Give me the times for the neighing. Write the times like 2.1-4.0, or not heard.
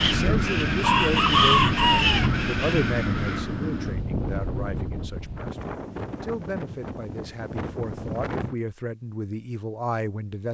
not heard.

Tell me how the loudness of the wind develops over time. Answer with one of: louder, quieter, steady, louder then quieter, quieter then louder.
quieter.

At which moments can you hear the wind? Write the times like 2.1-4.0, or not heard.
0.0-8.6.